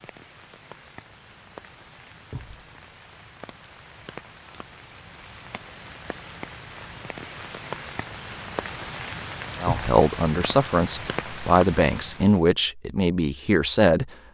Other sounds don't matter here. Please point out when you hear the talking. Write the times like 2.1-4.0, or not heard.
9.6-14.1.